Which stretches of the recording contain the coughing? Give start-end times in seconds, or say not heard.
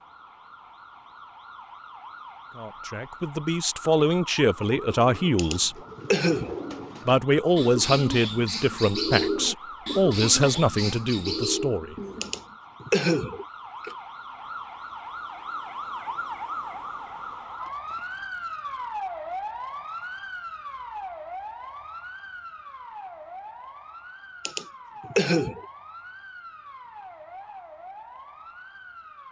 5.3-6.6, 12.2-13.9, 24.4-25.6.